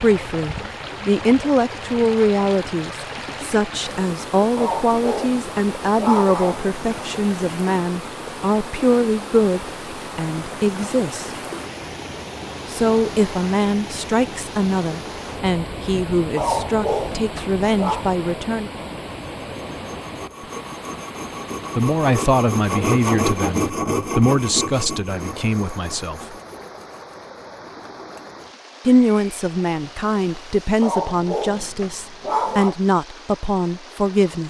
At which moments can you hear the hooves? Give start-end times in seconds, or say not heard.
not heard.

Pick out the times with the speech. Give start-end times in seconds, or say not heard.
0.0-11.3, 12.7-18.7, 21.8-26.4, 28.9-34.4.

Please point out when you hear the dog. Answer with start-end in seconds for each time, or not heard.
4.5-6.8, 16.4-18.1, 30.8-32.8.